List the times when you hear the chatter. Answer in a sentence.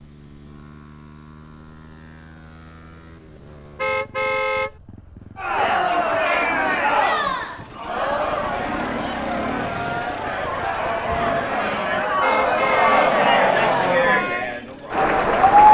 You can hear the chatter from 5.3 to 15.6 s.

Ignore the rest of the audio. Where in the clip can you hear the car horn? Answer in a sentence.
You can hear the car horn from 3.8 to 4.7 s and from 12.2 to 13.2 s.